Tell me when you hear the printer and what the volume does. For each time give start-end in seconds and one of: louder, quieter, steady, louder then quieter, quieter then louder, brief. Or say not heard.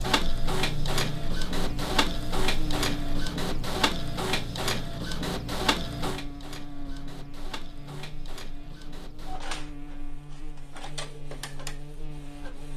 0.0-12.7 quieter.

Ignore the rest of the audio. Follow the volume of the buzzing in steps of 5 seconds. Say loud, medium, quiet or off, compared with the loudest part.
loud, medium, medium.